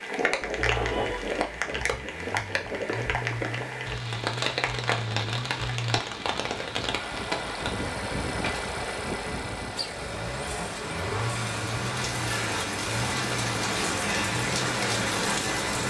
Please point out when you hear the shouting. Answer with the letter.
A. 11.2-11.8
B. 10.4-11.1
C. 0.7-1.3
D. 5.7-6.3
C.